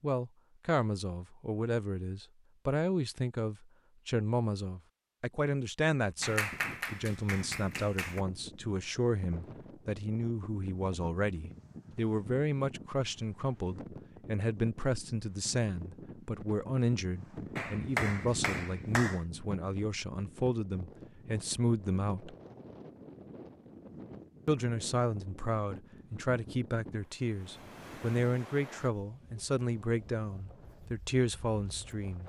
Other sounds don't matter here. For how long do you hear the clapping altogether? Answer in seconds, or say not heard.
4 s.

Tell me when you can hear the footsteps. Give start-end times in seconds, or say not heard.
not heard.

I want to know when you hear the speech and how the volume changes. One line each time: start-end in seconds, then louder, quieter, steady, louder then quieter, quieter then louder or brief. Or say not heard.
0.0-22.4 steady
24.4-32.2 steady.